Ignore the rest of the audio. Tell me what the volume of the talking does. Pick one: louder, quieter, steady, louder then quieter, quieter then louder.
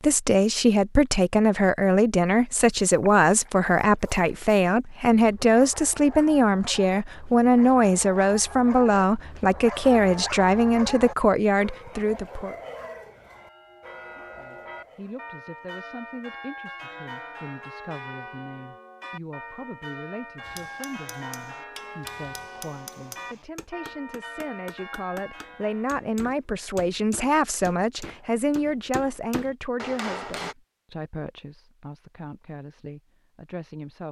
quieter then louder.